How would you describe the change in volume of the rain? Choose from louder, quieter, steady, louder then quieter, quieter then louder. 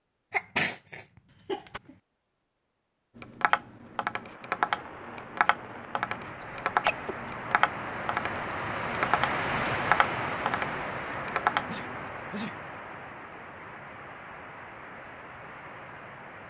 louder then quieter.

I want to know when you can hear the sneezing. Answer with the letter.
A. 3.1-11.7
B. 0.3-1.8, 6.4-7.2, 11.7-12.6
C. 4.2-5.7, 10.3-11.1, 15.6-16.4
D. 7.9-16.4
B.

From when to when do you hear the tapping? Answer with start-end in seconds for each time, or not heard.
3.1-11.7.